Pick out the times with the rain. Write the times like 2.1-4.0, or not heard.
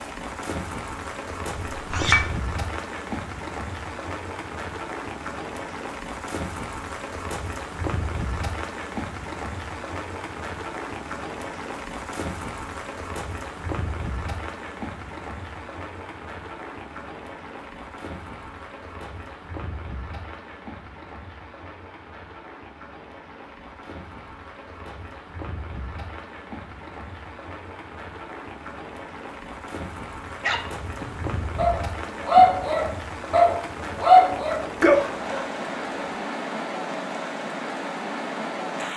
0.0-38.9.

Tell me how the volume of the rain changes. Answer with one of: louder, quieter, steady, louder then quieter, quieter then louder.
quieter then louder.